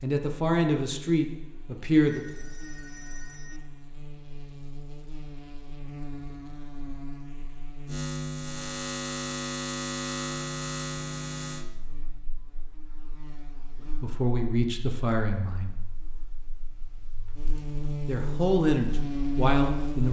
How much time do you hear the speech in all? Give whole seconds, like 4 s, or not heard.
6 s.